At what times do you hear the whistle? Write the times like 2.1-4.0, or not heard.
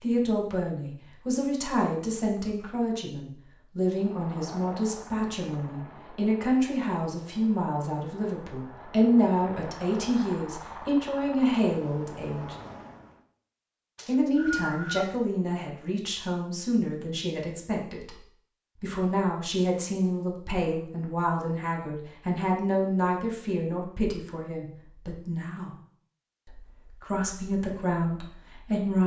13.9-15.1.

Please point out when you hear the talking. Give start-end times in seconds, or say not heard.
0.0-12.6, 14.1-18.2, 18.8-25.7, 26.4-29.0.